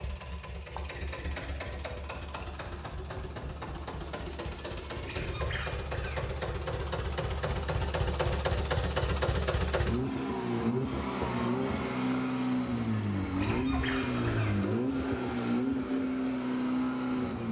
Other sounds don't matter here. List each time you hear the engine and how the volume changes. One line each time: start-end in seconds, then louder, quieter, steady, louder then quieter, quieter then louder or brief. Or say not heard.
0.0-17.4 louder.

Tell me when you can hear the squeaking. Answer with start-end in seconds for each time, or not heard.
4.5-6.2, 12.8-14.5.